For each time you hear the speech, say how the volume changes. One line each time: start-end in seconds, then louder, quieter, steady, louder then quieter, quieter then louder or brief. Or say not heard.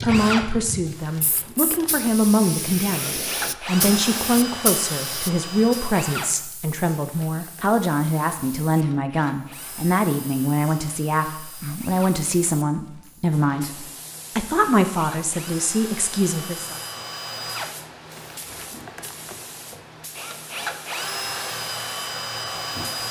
0.0-16.8 steady.